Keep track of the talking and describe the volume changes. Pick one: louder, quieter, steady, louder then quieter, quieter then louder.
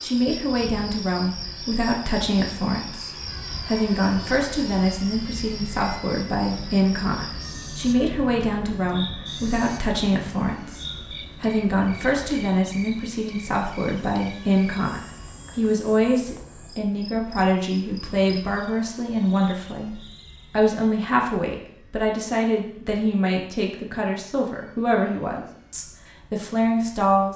steady.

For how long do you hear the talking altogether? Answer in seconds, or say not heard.
27 s.